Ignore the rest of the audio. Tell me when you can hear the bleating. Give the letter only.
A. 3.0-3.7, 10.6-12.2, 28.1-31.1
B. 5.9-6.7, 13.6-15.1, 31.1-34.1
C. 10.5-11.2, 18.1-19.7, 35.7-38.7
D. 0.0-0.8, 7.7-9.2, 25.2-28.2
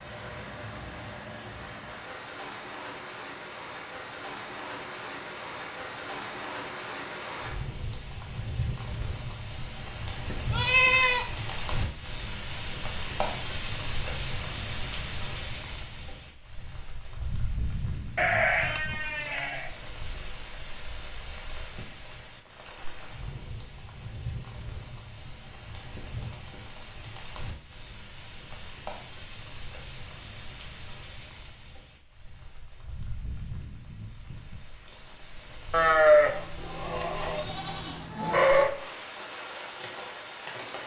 C.